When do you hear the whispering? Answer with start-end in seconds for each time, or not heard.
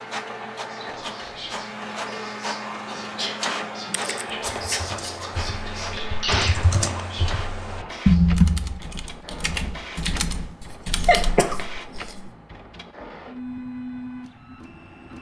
0.6-8.2.